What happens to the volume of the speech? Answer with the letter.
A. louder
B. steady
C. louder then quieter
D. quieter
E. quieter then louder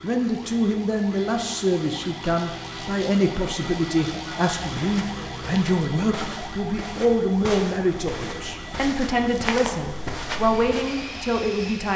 B.